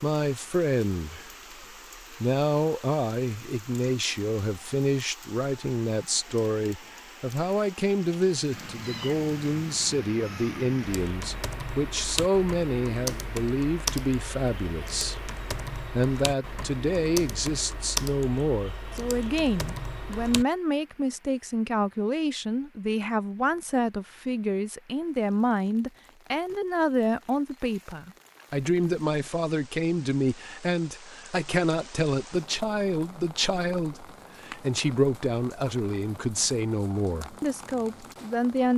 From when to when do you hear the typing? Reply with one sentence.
The typing can be heard from 10.8 to 20.4 s.